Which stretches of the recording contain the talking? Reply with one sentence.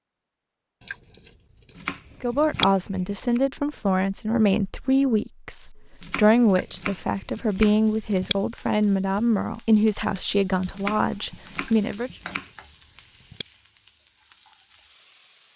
The talking can be heard from 2.2 to 12.1 s.